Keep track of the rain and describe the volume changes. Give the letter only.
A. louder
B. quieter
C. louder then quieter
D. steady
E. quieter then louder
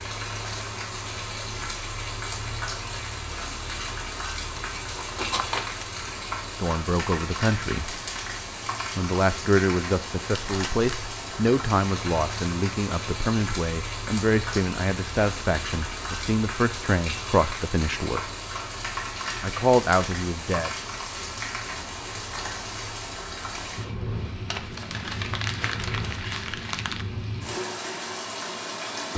D.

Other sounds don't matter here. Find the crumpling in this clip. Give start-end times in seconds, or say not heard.
4.5-5.8, 10.3-11.1, 24.4-27.1.